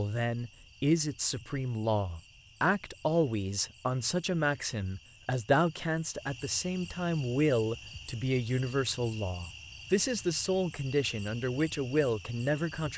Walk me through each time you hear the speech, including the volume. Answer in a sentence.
You can hear the speech from 0.0 to 12.9 s, at a steady volume.